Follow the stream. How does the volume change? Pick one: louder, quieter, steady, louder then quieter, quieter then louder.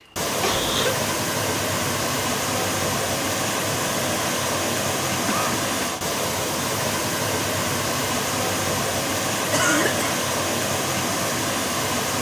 steady.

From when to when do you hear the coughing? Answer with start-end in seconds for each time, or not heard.
0.4-1.0, 5.2-5.9, 9.5-10.1.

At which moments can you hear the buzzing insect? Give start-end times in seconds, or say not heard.
not heard.